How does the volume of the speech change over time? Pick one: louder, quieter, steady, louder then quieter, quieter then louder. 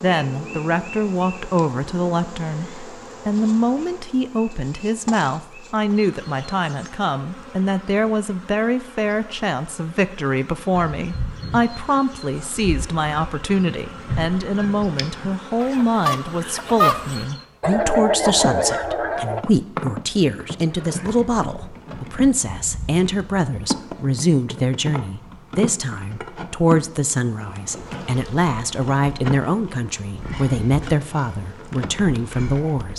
steady.